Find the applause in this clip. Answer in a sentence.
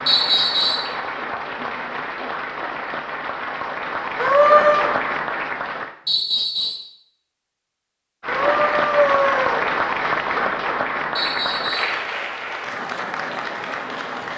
The applause can be heard from 0.0 to 6.0 s and from 8.2 to 14.3 s.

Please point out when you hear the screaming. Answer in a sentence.
The screaming can be heard from 4.2 to 4.8 s and from 8.2 to 9.7 s.